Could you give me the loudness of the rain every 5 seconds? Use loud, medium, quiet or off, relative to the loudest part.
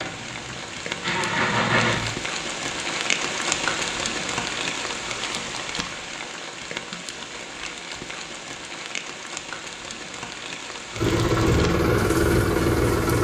loud, medium, medium.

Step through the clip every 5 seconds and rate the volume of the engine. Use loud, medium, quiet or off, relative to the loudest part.
medium, off, loud.